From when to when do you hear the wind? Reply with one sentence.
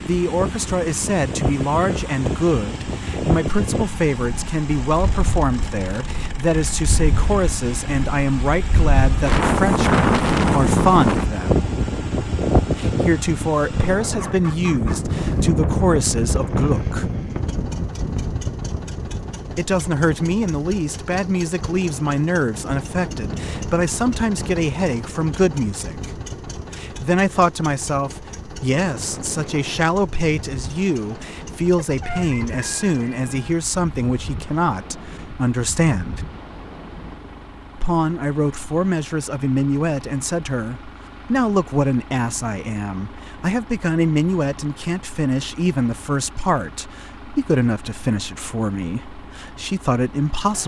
You can hear the wind from 0.0 to 37.5 s.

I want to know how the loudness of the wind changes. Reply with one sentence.
The volume of the wind goes up, then down.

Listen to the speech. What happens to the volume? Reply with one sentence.
The loudness of the speech stays about the same.